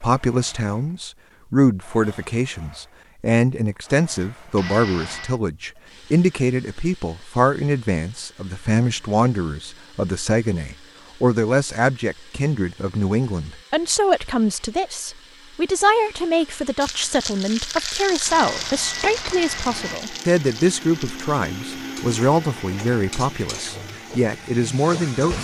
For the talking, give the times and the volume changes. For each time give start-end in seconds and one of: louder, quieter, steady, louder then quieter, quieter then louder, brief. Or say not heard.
0.0-25.3 steady.